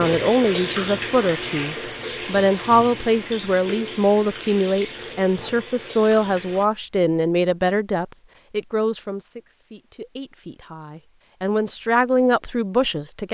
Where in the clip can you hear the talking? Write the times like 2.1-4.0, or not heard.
0.0-13.2.